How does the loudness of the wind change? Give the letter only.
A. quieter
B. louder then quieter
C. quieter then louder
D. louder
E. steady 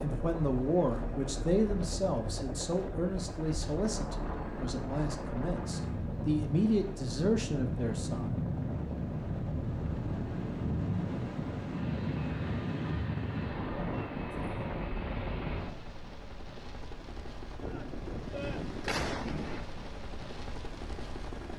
D.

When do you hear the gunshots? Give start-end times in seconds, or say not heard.
17.6-19.6.